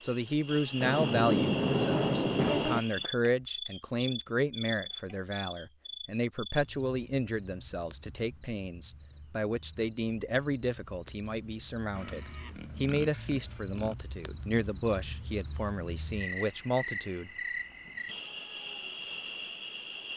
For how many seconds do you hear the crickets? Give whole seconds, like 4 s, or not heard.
20 s.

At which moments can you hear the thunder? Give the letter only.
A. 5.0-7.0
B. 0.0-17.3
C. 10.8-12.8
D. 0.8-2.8
D.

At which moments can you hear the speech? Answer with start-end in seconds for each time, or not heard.
0.0-17.3.